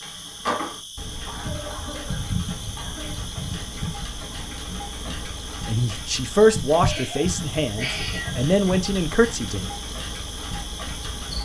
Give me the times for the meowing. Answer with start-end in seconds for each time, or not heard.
6.9-8.4.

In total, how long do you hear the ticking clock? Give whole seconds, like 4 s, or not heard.
11 s.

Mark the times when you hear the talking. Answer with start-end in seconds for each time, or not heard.
5.0-9.7.